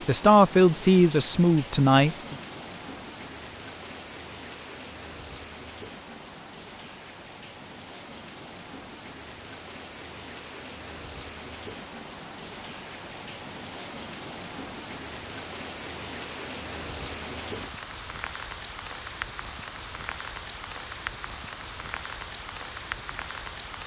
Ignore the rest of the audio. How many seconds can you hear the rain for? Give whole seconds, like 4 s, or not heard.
24 s.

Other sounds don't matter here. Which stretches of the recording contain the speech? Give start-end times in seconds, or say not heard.
0.1-2.4.